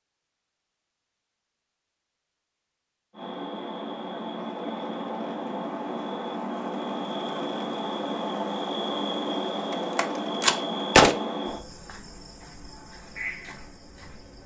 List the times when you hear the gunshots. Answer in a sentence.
You can hear the gunshots from 9.7 to 11.2 s.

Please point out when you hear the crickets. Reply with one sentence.
You can hear the crickets from 3.1 to 14.4 s.